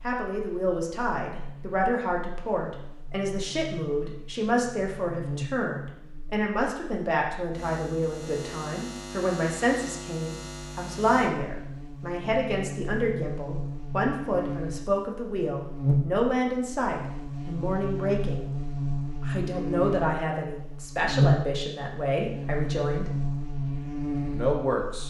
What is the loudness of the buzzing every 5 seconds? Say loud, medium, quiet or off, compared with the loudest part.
quiet, medium, medium, loud, loud.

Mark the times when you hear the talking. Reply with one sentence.
The talking can be heard from 0.0 to 18.5 s, from 19.2 to 23.2 s and from 24.3 to 25.0 s.